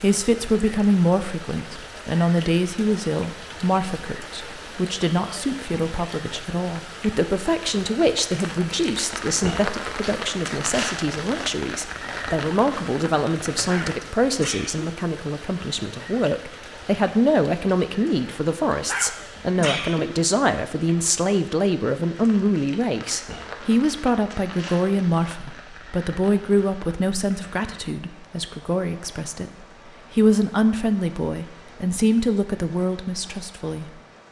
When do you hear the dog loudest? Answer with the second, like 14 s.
20 s.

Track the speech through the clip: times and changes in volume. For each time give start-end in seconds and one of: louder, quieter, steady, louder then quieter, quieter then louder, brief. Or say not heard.
0.0-34.0 steady.